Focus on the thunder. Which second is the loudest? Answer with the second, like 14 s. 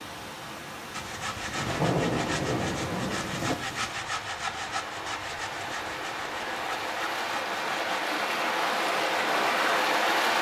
2 s.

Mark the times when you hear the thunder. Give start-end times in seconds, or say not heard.
1.6-3.5.